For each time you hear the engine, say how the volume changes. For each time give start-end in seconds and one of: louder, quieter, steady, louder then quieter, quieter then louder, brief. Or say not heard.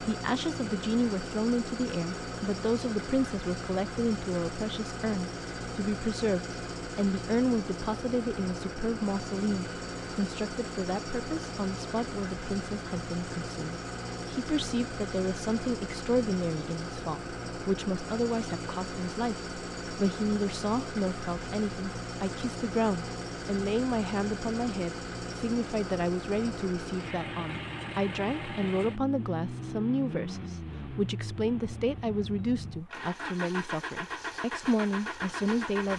0.0-35.9 steady.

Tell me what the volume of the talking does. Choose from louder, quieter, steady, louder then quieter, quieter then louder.
steady.